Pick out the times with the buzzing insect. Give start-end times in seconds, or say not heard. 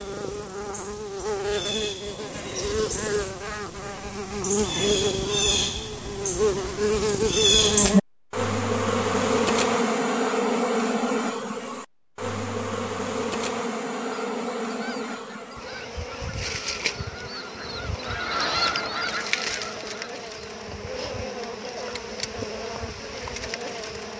0.0-24.1.